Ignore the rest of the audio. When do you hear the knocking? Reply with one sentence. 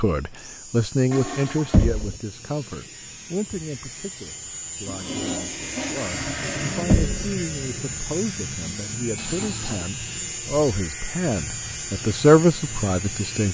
You can hear the knocking from 1.7 to 2.1 s and from 6.9 to 7.3 s.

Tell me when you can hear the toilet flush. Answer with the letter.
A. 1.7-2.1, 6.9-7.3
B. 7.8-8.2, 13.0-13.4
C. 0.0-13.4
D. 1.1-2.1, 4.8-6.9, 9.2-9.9
D.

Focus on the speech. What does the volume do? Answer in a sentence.
The volume of the speech goes down, then up.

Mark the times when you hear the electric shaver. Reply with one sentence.
You can hear the electric shaver from 0.0 to 13.4 s.